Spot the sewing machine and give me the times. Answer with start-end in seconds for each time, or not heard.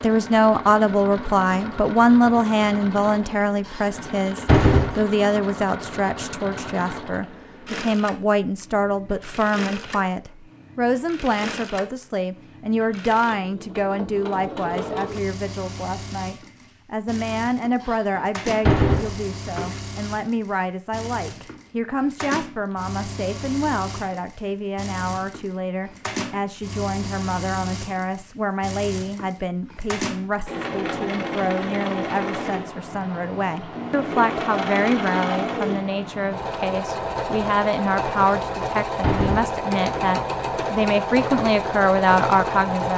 0.0-42.9.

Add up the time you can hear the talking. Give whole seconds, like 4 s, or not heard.
43 s.